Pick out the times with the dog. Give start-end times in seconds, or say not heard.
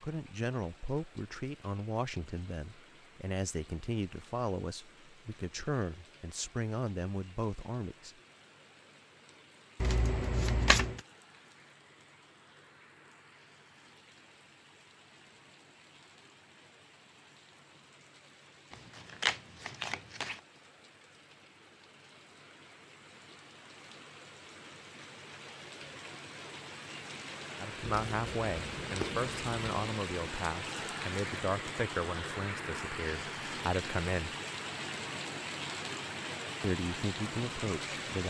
not heard.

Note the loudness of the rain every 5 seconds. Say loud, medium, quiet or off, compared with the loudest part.
quiet, quiet, quiet, quiet, quiet, loud, loud, loud.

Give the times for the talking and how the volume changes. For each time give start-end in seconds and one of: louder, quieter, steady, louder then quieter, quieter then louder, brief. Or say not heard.
0.0-8.1 steady
27.6-34.4 steady
36.6-38.2 brief.